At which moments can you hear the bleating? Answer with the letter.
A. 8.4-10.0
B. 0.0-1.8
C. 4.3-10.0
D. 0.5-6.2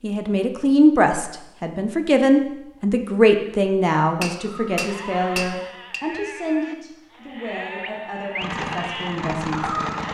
C.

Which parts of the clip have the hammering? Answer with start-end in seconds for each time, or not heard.
4.2-6.0.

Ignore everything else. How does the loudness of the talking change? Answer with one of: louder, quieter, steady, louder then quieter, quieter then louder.
quieter.